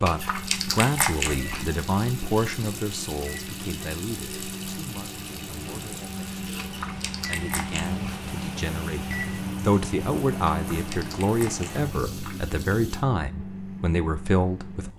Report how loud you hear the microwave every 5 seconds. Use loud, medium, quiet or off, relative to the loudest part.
medium, loud, loud.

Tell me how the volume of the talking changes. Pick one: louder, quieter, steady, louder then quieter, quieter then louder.
quieter then louder.